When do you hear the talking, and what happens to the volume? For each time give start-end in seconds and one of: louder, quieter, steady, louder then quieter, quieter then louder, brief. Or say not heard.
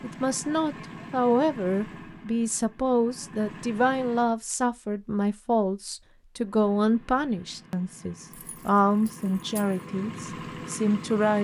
0.0-11.4 steady.